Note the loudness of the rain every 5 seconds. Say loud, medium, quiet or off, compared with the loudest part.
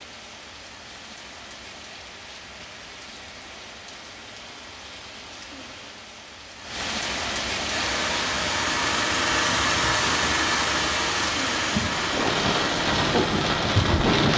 quiet, medium, loud.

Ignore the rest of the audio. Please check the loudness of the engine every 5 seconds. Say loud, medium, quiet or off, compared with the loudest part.
off, loud, loud.